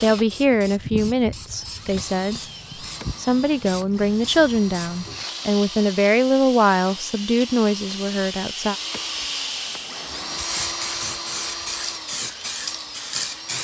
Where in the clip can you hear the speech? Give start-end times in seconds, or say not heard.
0.0-2.4, 3.1-8.8.